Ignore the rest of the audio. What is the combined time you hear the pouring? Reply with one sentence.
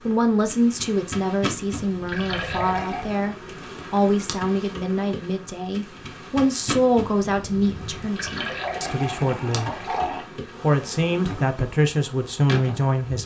The pouring can be heard for 3 seconds in total.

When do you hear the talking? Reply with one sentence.
You can hear the talking from 0.1 to 9.7 s and from 10.6 to 13.2 s.